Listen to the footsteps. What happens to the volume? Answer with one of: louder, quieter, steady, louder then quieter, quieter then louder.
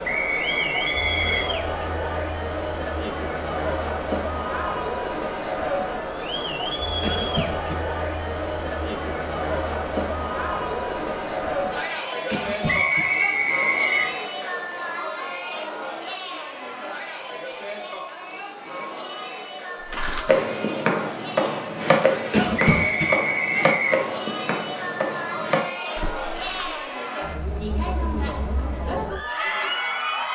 quieter.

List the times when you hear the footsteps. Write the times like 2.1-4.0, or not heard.
19.9-26.9.